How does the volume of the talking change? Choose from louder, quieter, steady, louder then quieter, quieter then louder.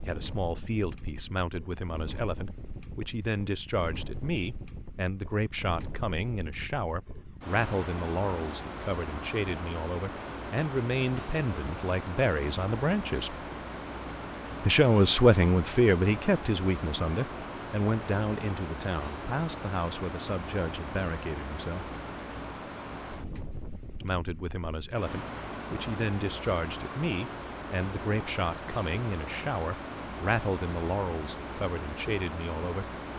louder then quieter.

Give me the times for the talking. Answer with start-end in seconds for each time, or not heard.
0.0-13.3, 14.6-21.9, 24.0-32.9.